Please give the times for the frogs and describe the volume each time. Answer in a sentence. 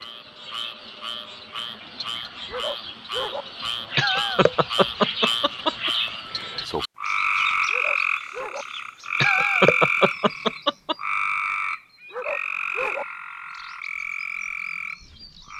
The frogs can be heard from 0.0 to 15.5 s, getting louder then quieter.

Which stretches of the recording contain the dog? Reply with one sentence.
You can hear the dog from 2.5 to 3.5 s, from 7.7 to 8.7 s and from 12.1 to 13.1 s.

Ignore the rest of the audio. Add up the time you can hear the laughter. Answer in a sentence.
The laughter can be heard for 4 seconds in total.